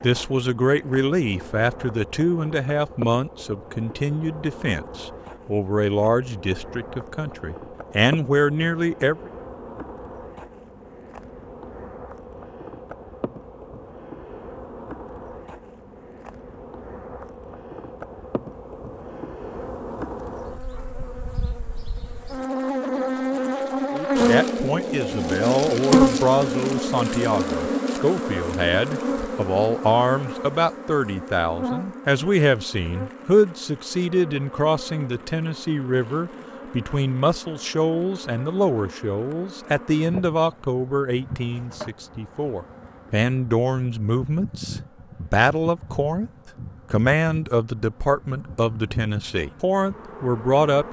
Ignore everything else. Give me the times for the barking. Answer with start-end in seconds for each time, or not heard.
not heard.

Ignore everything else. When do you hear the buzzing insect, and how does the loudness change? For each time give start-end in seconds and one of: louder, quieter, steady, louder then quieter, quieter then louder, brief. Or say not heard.
0.0-50.8 louder then quieter.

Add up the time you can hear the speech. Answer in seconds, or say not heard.
36 s.